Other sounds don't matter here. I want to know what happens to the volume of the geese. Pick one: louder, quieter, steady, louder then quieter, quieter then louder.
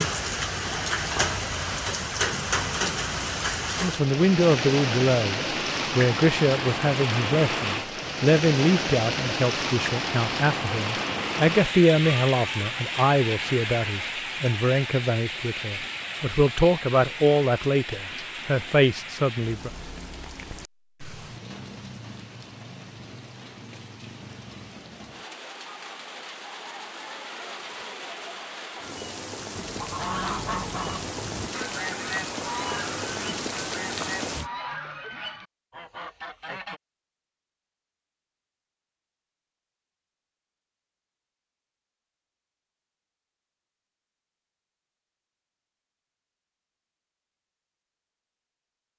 quieter.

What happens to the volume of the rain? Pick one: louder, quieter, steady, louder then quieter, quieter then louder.
quieter then louder.